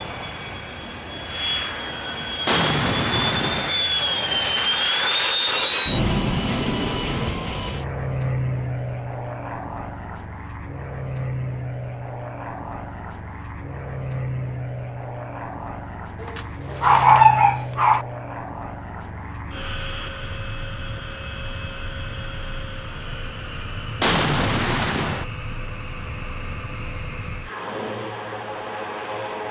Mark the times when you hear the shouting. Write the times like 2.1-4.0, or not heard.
not heard.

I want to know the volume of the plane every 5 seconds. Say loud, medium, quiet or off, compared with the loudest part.
loud, loud, medium, medium, medium, medium.